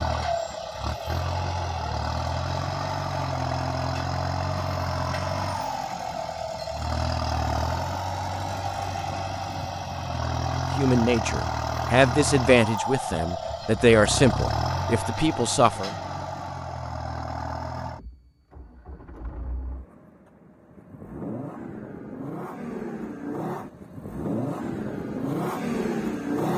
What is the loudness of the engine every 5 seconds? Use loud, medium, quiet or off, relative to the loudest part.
loud, loud, loud, medium, medium, loud.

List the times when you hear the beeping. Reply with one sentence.
The beeping can't be heard in this clip.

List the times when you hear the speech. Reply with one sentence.
You can hear the speech from 10.8 to 15.9 s.